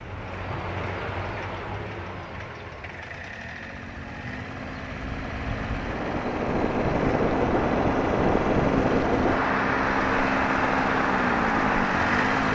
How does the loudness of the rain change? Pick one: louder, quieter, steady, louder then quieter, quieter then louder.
quieter then louder.